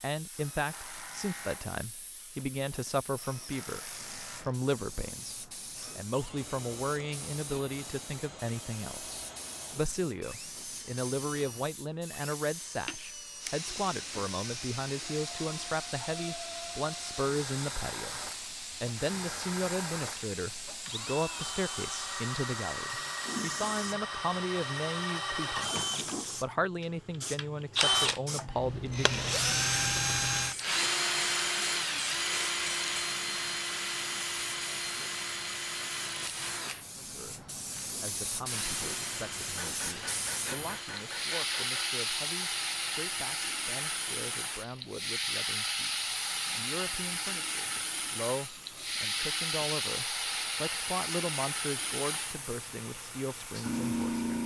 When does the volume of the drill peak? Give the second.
30 s.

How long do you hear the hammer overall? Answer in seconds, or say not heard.
2 s.